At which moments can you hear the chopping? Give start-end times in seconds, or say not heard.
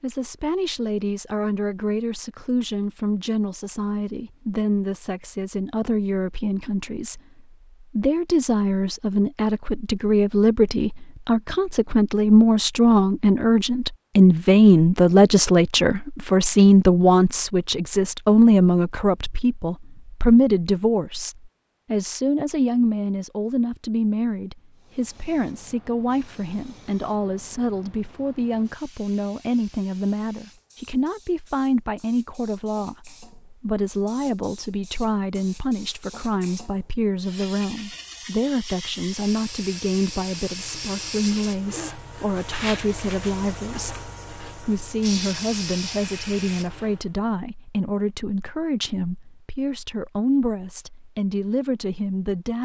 not heard.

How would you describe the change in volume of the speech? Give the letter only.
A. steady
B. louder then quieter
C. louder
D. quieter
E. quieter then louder
B.